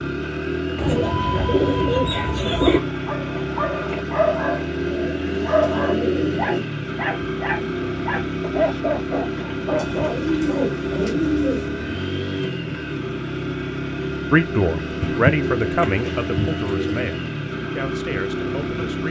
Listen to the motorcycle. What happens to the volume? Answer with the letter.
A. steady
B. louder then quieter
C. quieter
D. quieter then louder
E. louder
A.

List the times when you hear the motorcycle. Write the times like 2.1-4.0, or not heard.
0.0-19.0.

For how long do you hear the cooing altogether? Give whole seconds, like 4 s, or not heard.
8 s.